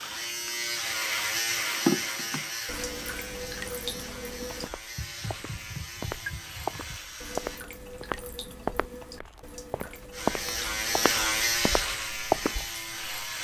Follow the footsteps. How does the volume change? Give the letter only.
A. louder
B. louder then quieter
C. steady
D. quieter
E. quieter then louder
B.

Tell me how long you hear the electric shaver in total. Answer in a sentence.
The electric shaver can be heard for 11 seconds in total.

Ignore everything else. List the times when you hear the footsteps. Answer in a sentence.
The footsteps can be heard from 4.5 to 12.7 s.